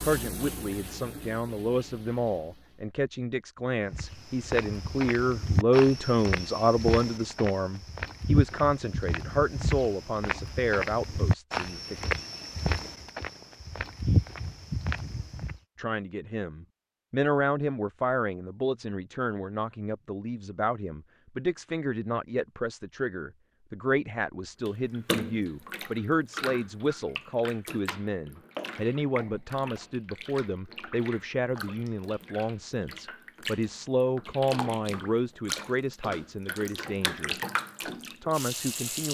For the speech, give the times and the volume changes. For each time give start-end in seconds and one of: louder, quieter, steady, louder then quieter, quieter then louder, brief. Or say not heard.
0.0-12.1 louder then quieter
15.8-37.4 steady
38.2-39.0 brief.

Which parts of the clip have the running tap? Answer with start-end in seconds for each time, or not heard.
0.0-2.9, 24.6-39.0.